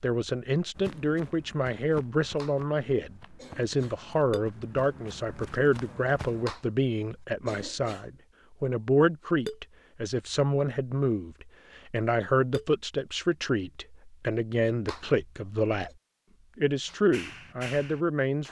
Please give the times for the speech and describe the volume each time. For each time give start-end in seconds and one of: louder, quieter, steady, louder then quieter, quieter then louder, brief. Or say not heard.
0.0-15.9 steady
16.6-18.4 brief.